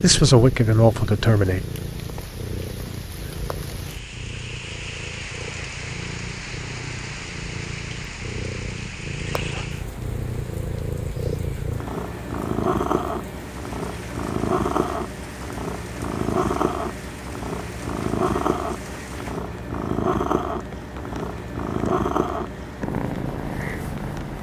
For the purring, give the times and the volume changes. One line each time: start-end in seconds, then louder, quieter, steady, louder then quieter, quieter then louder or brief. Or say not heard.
0.0-24.3 louder.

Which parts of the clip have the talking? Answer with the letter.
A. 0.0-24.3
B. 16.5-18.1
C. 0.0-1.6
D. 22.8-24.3
C.